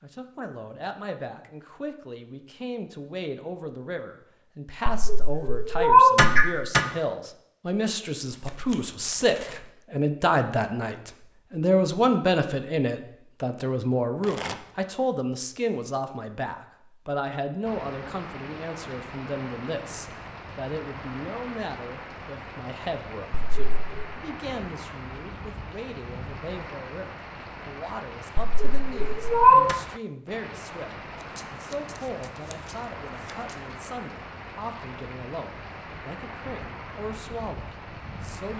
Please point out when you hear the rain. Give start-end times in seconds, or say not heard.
17.6-38.5.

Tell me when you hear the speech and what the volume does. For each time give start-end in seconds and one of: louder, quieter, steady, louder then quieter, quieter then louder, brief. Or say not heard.
0.0-38.5 louder then quieter.